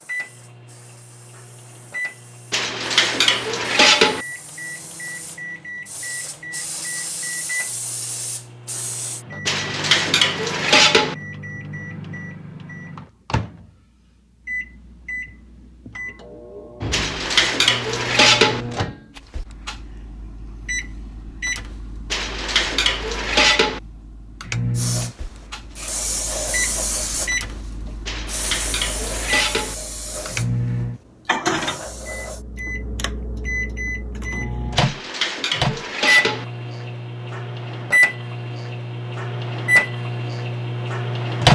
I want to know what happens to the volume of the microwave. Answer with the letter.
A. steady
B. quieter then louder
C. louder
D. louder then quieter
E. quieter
C.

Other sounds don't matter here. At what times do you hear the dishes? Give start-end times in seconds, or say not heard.
2.5-4.2, 9.4-11.2, 16.9-18.6, 22.1-23.8, 28.1-29.8, 34.8-36.5.